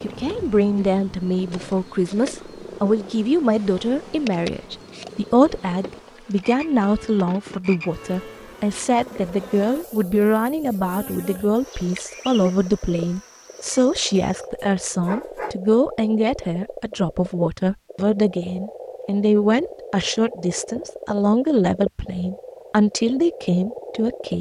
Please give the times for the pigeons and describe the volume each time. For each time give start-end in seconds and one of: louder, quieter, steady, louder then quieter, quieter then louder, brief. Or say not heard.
not heard.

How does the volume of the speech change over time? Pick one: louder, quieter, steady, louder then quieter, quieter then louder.
steady.